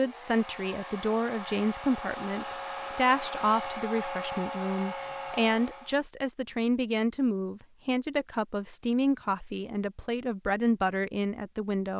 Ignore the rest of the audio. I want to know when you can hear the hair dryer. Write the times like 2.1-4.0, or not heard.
0.0-6.0.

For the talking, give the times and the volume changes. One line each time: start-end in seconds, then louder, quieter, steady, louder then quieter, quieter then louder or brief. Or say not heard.
0.0-11.9 steady.